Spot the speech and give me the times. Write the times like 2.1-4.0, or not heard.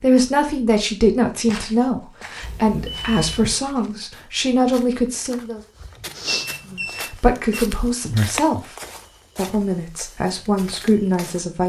0.0-5.6, 6.7-8.8, 9.3-11.6.